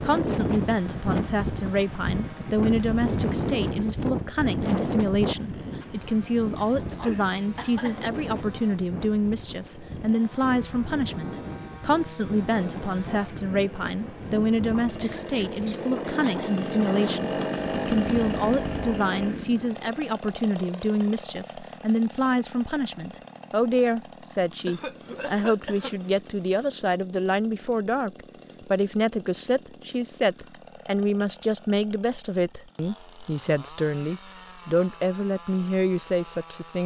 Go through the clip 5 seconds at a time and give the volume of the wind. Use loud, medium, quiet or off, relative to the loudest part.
loud, medium, medium, medium, off, off, off, off.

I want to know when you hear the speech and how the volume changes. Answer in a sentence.
You can hear the speech from 0.0 to 36.8 s, at a steady volume.